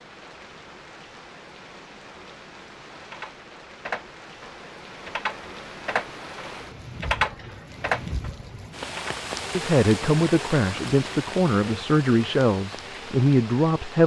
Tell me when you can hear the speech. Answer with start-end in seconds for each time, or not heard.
9.5-14.0.